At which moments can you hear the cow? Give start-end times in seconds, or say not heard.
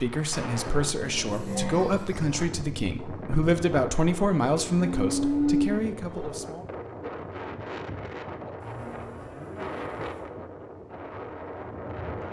1.0-2.5, 4.5-6.4, 8.6-10.2.